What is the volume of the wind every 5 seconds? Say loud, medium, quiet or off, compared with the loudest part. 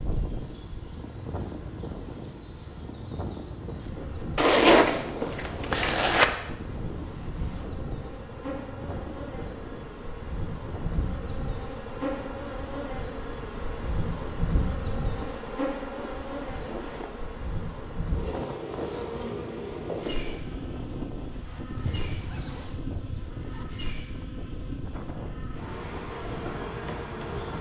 loud, loud, medium, loud, loud, loud.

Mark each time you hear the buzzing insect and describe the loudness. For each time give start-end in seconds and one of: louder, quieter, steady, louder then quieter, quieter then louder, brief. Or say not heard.
0.0-27.5 louder then quieter.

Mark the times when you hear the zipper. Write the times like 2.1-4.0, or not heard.
4.3-6.2, 21.8-23.6.